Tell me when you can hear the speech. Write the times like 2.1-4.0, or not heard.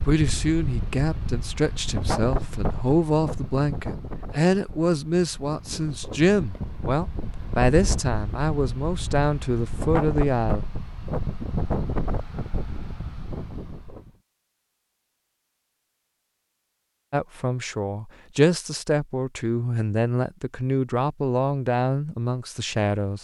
0.0-10.6, 17.1-23.1.